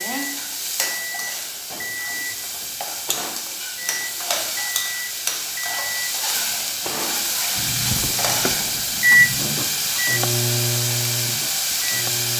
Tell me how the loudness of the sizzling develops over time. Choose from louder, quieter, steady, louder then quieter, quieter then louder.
louder.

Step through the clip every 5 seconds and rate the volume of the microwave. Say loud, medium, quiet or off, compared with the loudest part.
medium, loud, loud.